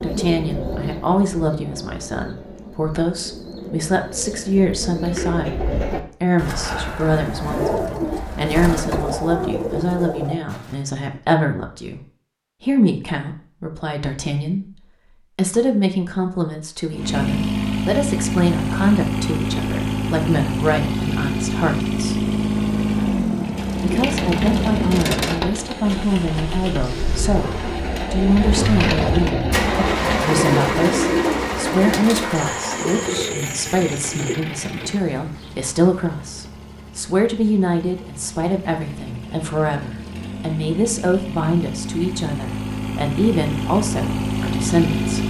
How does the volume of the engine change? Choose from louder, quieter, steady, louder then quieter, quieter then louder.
quieter then louder.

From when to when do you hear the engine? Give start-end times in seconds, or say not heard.
16.9-45.2.